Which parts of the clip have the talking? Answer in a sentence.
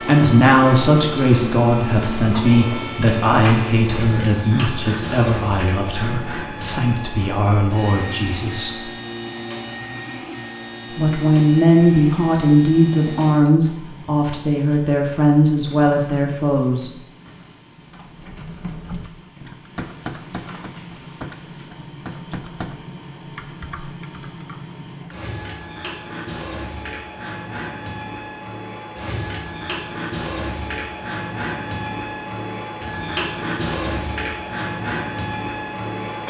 You can hear the talking from 0.1 to 8.8 s and from 10.9 to 16.9 s.